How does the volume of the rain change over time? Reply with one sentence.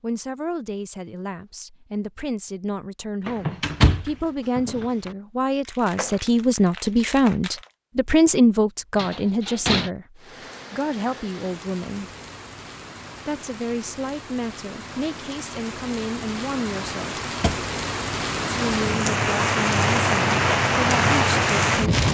The volume of the rain goes up.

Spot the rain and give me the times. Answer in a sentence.
The rain can be heard from 10.2 to 22.0 s.